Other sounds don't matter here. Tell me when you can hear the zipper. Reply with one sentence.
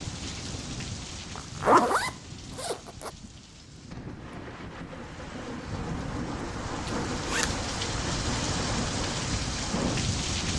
The zipper can be heard from 1.4 to 3.1 s and from 6.8 to 7.5 s.